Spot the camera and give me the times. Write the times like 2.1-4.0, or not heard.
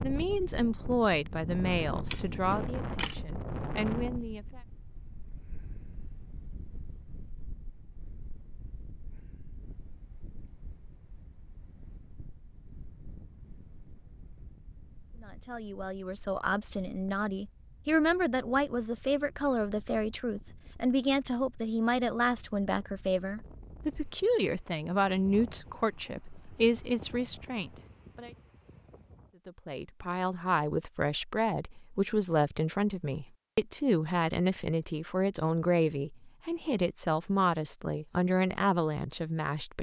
2.0-3.2.